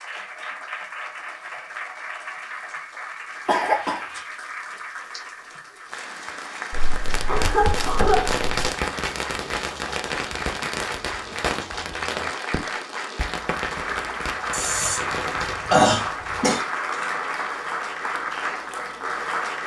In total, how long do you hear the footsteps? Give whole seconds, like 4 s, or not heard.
not heard.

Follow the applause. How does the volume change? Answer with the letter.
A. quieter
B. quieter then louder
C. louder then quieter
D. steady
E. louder
E.